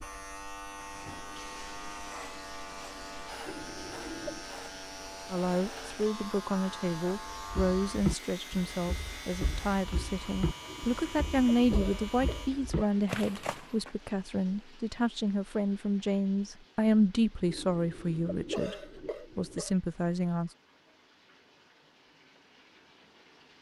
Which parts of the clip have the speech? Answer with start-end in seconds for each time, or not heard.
5.3-18.8, 19.4-20.5.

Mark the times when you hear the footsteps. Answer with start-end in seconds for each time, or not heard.
7.4-13.9.